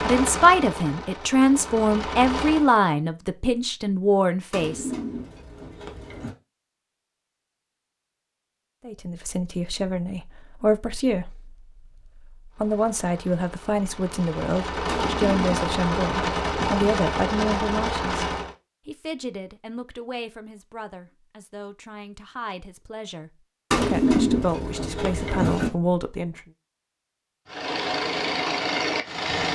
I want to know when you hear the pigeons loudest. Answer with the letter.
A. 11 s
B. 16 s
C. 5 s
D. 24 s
D.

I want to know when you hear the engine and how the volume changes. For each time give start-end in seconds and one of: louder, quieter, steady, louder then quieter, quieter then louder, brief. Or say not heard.
0.0-2.7 brief
12.5-18.6 louder
27.4-29.5 brief.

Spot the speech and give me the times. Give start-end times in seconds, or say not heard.
0.0-4.9, 8.8-26.4.